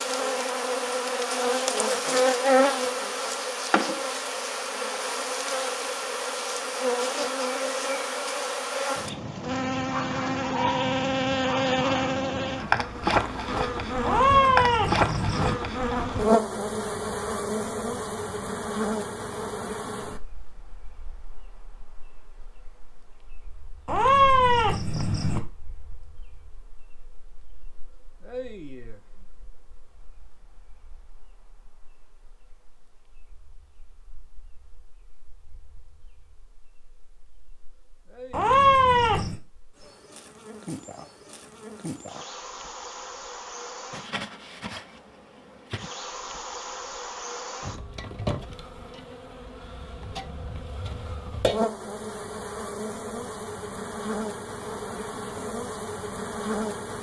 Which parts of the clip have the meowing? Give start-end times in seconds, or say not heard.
14.0-15.6, 23.9-25.4, 38.3-39.4.